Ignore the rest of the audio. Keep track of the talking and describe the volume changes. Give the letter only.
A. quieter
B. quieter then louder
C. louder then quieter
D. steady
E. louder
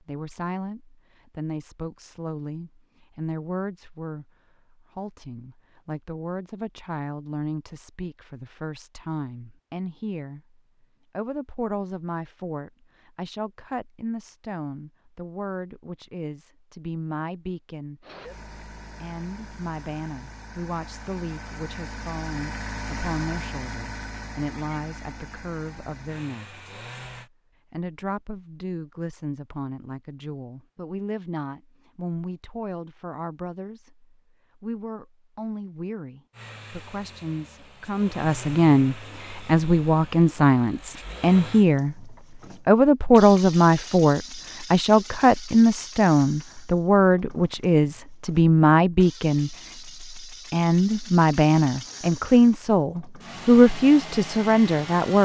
E.